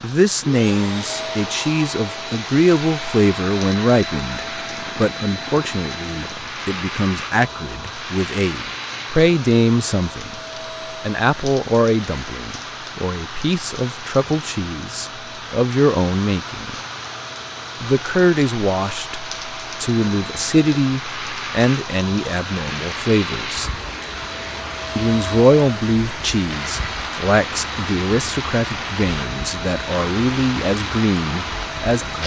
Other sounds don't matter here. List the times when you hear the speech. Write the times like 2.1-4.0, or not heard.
0.0-10.4, 11.0-16.8, 17.8-23.7, 24.9-32.2.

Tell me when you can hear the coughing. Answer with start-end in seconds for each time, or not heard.
not heard.